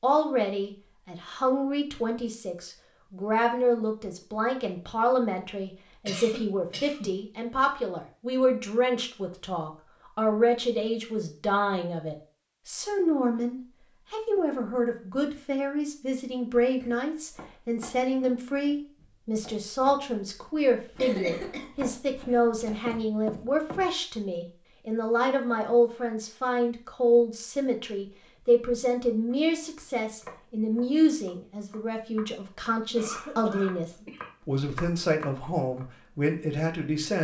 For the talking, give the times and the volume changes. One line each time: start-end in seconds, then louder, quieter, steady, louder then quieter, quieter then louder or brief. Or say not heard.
0.0-37.1 steady.